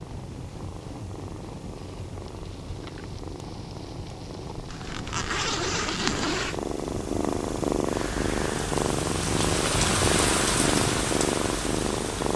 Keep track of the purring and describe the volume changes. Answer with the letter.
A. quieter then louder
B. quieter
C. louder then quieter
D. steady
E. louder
E.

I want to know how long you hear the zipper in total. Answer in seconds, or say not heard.
2 s.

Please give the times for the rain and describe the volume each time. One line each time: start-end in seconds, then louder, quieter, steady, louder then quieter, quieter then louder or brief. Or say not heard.
0.0-12.3 louder.